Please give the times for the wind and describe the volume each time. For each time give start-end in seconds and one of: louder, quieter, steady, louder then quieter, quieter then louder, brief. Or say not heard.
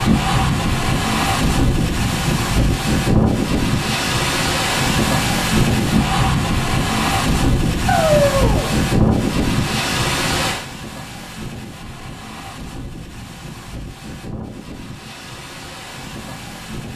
0.0-16.9 quieter.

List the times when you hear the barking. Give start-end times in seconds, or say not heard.
7.8-8.8.